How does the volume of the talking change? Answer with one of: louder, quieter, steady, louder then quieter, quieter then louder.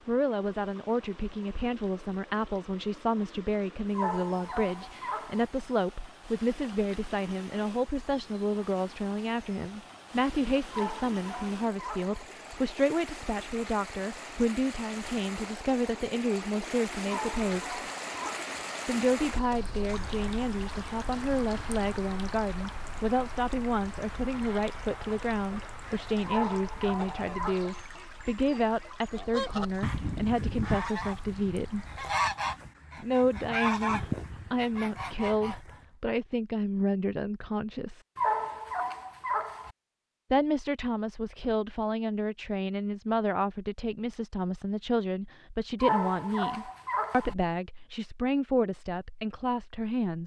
steady.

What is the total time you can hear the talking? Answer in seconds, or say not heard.
46 s.